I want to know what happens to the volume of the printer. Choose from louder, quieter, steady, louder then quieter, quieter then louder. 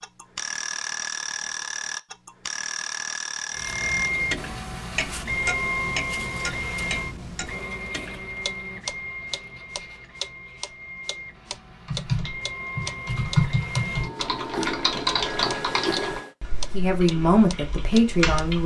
quieter then louder.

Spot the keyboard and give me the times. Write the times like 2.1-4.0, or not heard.
11.8-18.6.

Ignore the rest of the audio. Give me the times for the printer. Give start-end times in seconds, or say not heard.
3.5-16.4.